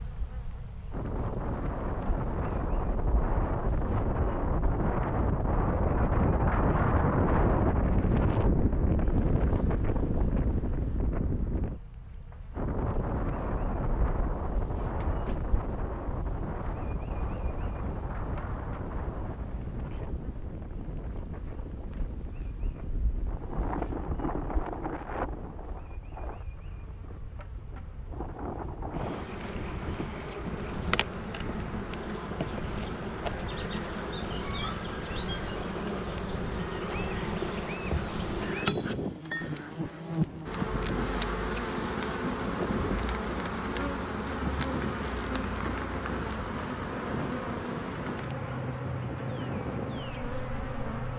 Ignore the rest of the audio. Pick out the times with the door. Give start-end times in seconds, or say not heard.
15.0-15.6.